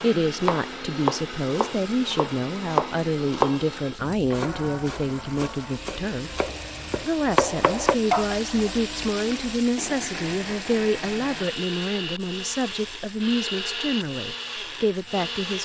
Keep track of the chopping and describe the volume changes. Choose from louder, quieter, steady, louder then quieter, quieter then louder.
quieter then louder.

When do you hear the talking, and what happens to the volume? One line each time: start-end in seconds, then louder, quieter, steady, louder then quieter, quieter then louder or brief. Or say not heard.
0.0-15.5 steady.